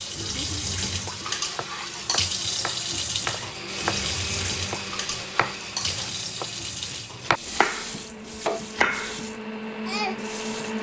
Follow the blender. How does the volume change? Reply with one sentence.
The volume of the blender goes down, then up.